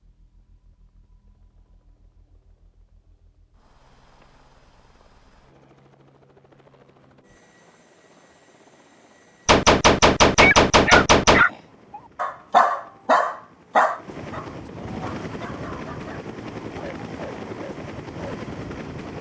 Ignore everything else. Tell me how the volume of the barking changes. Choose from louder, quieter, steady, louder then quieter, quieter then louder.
quieter.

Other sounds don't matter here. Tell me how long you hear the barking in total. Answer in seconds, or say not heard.
8 s.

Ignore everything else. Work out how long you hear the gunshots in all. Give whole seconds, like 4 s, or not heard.
2 s.